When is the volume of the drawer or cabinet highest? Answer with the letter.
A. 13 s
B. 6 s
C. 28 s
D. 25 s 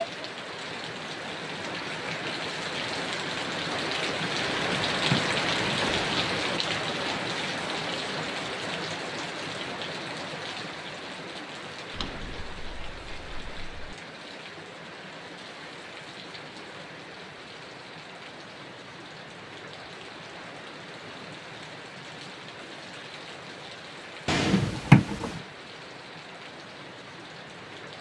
D.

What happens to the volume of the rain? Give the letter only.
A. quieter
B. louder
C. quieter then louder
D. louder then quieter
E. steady
A.